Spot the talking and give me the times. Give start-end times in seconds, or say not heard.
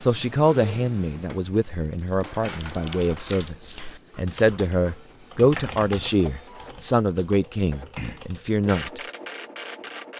0.0-9.0.